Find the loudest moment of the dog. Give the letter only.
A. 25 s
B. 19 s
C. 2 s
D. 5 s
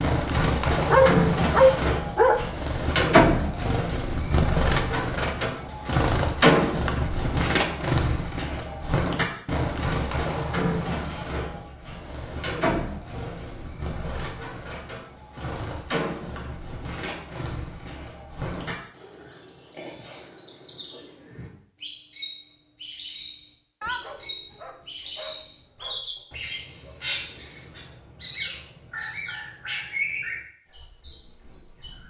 C.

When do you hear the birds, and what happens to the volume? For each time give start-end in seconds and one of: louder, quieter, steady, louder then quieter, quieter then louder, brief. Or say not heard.
0.0-32.0 quieter.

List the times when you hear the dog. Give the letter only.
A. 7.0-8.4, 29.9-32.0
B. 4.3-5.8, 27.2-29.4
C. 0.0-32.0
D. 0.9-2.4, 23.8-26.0
D.